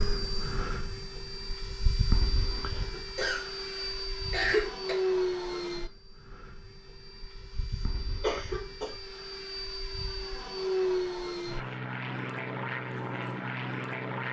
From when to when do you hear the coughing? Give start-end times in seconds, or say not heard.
2.9-5.0, 8.2-8.9.